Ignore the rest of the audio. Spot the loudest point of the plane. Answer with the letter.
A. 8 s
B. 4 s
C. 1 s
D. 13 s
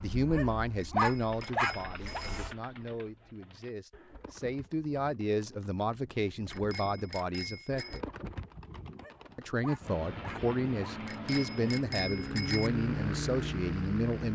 D.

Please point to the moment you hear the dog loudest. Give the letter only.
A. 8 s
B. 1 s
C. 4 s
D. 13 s
B.